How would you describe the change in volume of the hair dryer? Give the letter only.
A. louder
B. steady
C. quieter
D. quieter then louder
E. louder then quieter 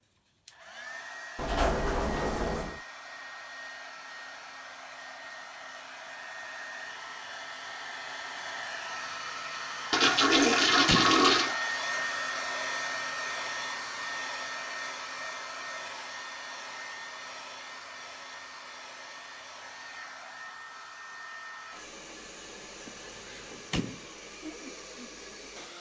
E.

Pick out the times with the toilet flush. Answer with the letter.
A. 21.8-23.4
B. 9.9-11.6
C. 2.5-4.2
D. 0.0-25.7
B.